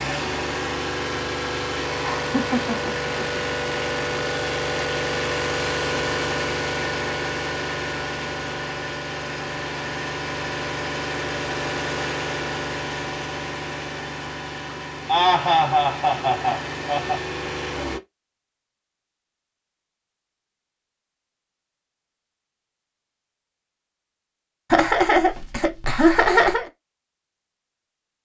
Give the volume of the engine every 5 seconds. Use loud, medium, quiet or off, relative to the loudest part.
loud, loud, loud, medium, off, off.